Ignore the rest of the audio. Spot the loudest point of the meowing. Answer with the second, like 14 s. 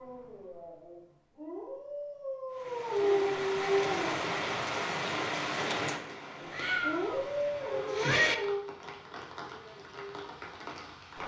8 s.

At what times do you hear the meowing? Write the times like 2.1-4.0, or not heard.
6.5-8.3.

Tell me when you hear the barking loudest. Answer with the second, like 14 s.
3 s.